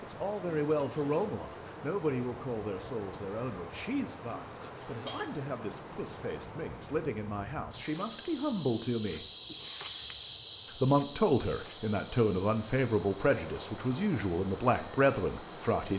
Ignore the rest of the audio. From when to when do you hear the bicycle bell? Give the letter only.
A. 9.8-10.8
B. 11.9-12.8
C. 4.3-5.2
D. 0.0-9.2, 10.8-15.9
C.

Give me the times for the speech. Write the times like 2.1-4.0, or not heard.
0.0-9.2, 10.8-15.9.